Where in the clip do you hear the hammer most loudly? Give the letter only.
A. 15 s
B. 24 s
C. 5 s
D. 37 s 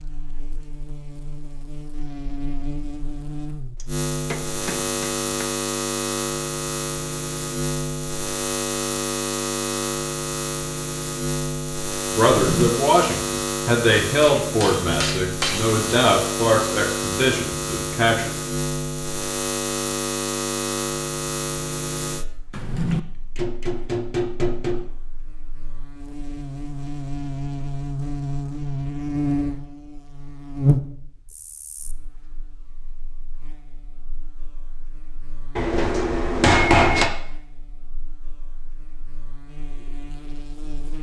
D.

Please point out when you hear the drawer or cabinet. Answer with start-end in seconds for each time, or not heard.
12.2-12.7, 22.5-23.0.